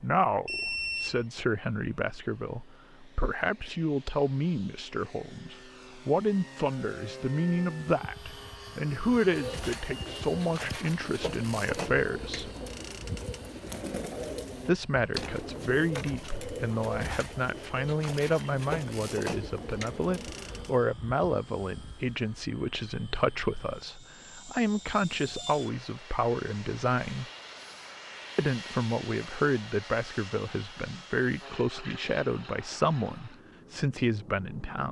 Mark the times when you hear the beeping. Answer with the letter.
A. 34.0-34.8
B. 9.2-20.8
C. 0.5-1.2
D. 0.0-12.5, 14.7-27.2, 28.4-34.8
C.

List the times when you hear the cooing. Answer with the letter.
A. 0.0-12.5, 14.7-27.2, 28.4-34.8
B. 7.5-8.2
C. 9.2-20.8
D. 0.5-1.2
C.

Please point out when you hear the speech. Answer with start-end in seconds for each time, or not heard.
0.0-12.5, 14.7-27.2, 28.4-34.8.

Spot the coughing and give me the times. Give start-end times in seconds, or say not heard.
not heard.